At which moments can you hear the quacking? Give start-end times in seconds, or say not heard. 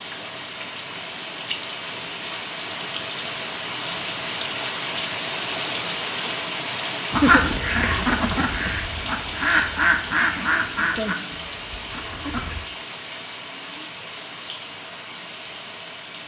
7.1-12.6.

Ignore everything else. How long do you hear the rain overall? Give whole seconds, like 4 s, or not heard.
16 s.